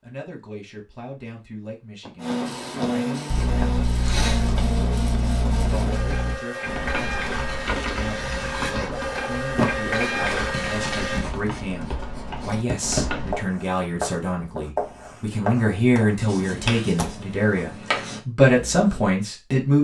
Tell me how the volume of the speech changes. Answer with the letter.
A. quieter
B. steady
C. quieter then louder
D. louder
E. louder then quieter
D.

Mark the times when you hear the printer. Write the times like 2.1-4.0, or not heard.
2.1-11.2.